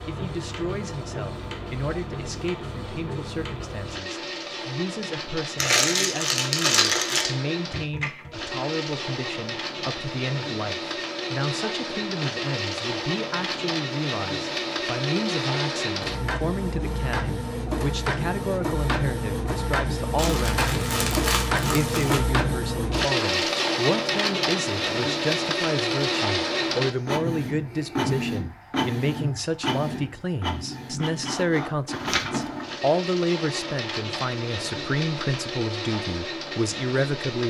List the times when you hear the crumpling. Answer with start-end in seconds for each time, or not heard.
5.5-7.3, 20.1-22.2.